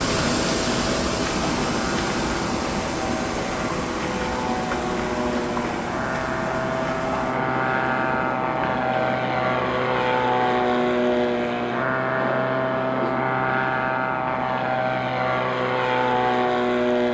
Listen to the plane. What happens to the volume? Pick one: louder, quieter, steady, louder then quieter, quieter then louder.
louder.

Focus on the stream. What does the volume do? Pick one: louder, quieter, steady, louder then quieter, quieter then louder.
quieter.